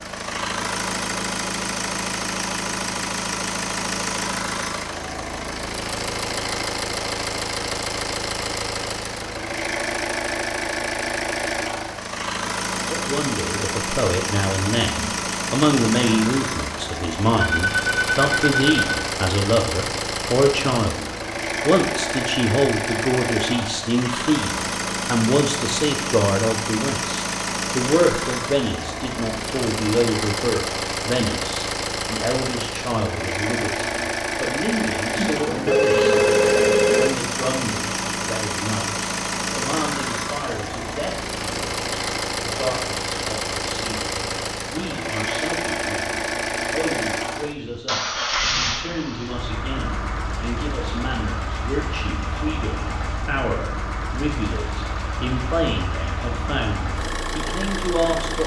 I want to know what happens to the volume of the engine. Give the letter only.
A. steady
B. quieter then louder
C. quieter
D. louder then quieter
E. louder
A.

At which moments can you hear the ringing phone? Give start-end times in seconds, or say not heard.
17.4-18.8, 35.1-37.1.